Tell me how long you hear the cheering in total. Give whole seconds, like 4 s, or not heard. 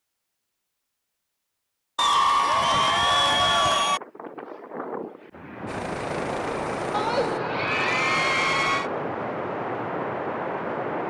4 s.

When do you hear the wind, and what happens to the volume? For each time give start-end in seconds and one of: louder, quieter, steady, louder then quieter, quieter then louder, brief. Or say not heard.
2.3-11.0 louder.